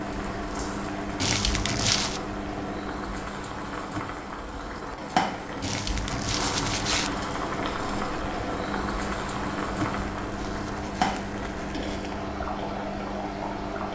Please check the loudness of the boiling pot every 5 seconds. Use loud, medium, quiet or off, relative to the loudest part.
medium, loud, loud.